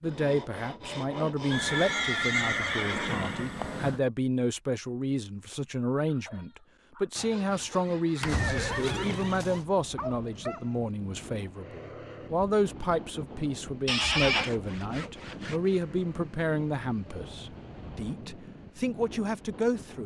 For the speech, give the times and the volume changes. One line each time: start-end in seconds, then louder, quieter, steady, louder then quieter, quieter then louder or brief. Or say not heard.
0.0-20.0 steady.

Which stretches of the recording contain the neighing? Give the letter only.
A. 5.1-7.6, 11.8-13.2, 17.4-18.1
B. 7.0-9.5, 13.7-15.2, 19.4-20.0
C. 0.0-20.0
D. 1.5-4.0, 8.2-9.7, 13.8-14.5
D.